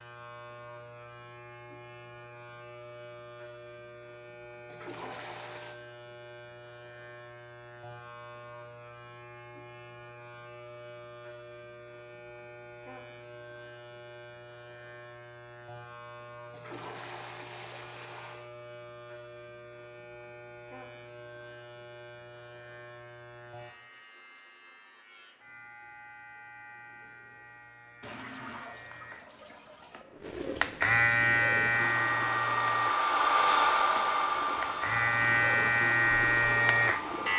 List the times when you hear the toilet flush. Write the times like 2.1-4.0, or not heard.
4.7-5.8, 16.5-18.5, 28.0-30.1.